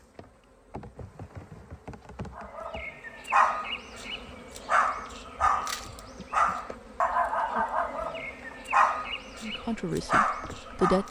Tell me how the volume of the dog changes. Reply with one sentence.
The volume of the dog stays about the same.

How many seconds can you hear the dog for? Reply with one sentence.
The dog can be heard for 9 seconds in total.